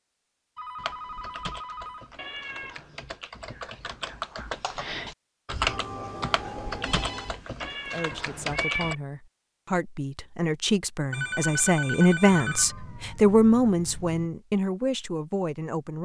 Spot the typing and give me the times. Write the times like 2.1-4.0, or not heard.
0.8-8.9.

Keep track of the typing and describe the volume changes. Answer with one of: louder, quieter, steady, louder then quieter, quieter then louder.
louder then quieter.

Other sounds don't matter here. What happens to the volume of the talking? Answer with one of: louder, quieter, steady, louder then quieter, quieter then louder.
louder then quieter.